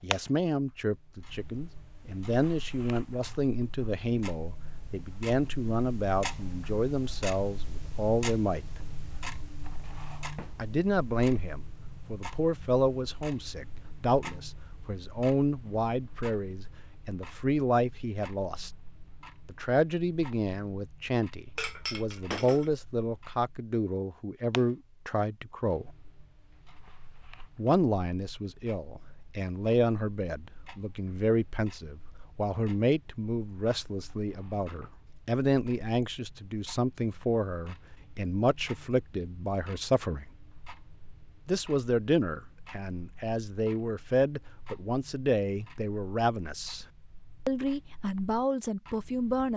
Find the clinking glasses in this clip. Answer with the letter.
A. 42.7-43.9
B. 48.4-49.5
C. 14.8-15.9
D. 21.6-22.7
D.